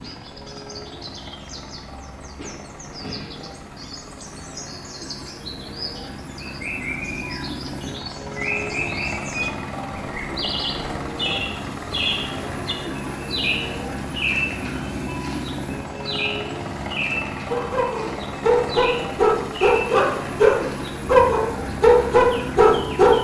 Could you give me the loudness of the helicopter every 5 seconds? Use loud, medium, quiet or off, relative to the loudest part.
medium, loud, loud, loud, loud.